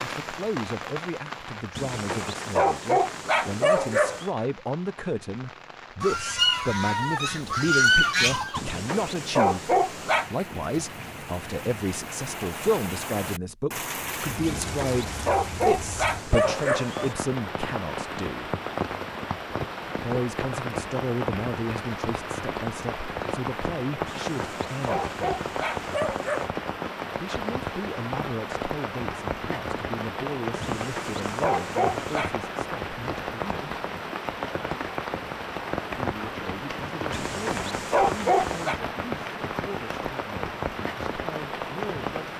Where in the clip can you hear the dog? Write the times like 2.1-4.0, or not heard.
1.8-4.3, 8.6-10.3, 14.4-17.1, 24.1-26.5, 30.6-32.3, 37.1-38.8.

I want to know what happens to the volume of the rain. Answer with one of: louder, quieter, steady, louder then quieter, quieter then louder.
louder.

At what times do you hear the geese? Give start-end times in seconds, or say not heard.
6.0-8.6.